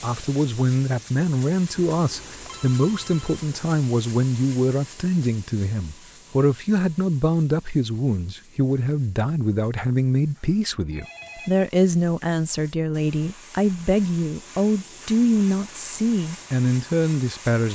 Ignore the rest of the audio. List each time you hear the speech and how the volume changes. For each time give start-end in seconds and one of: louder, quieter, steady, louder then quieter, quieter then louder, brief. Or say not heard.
0.0-17.7 steady.